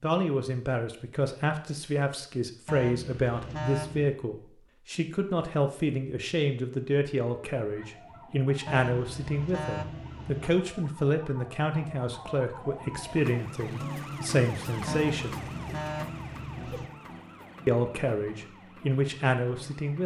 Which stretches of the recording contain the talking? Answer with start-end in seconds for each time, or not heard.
0.0-15.4, 17.6-20.0.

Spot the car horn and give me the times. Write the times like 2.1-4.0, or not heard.
2.6-4.2, 8.7-10.6, 14.8-16.9.